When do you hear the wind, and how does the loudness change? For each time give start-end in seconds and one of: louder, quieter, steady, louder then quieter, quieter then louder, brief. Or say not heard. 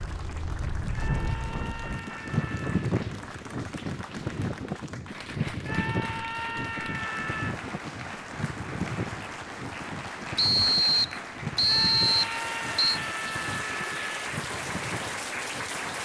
0.0-16.0 quieter.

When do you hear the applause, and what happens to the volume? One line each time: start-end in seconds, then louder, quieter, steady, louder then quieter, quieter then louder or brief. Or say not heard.
0.0-16.0 louder.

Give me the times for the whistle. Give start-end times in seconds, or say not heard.
10.3-13.0.